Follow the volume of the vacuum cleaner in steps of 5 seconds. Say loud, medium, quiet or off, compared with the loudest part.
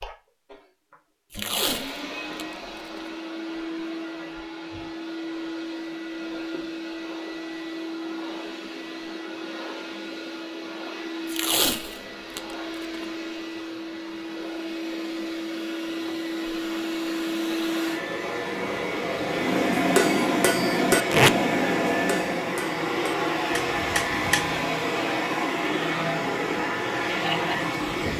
medium, medium, medium, loud, loud, loud.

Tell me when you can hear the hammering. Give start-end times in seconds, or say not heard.
19.3-24.6.